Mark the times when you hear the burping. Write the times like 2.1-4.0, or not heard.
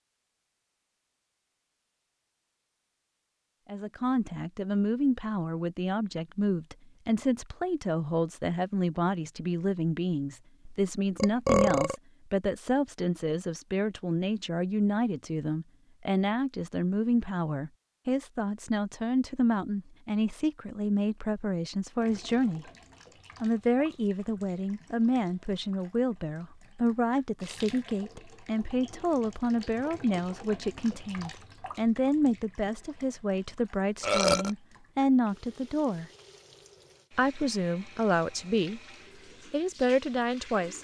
10.7-11.9, 34.0-34.5.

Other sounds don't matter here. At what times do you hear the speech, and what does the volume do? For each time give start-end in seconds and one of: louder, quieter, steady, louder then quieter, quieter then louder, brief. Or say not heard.
3.6-22.6 steady
23.4-36.0 steady
37.1-38.8 brief
39.5-40.8 brief.